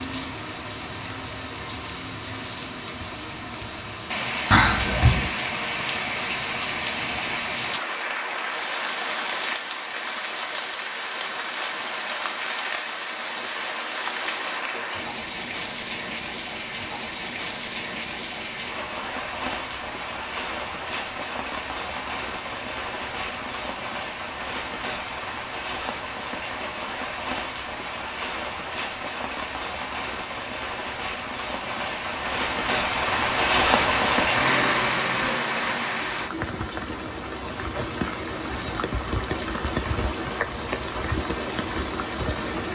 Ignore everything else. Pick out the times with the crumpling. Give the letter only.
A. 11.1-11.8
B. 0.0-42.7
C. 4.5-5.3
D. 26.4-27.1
C.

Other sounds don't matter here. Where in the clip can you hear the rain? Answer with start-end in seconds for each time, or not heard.
0.0-42.7.